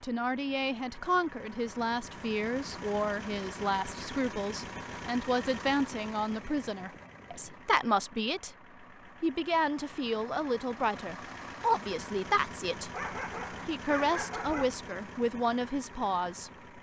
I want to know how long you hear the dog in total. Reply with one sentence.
The dog can be heard for 2 seconds in total.